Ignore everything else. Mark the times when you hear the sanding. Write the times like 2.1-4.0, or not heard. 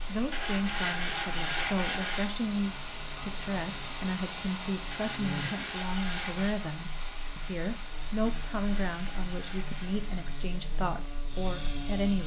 0.3-2.4, 4.9-6.5, 8.2-10.1.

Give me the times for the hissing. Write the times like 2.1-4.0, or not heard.
0.0-12.2.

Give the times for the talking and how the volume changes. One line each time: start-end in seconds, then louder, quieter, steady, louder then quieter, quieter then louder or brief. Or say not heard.
0.1-12.2 steady.